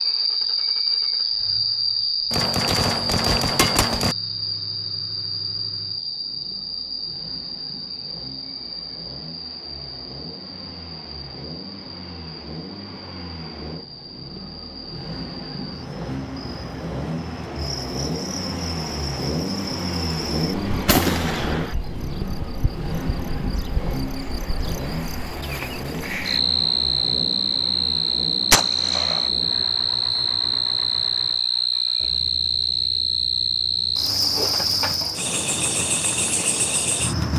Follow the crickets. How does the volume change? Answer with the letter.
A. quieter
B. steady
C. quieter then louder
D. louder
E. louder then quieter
C.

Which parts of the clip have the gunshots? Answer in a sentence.
The gunshots can be heard from 2.3 to 4.2 s, from 20.9 to 21.8 s and from 28.5 to 29.3 s.